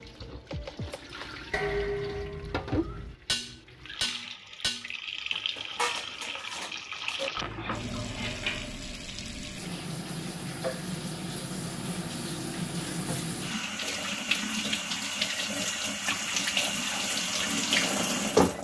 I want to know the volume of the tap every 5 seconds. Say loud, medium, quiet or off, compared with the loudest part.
quiet, medium, medium, loud.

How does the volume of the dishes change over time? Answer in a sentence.
The volume of the dishes goes down.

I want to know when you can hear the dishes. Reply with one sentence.
You can hear the dishes from 0.9 to 8.8 s.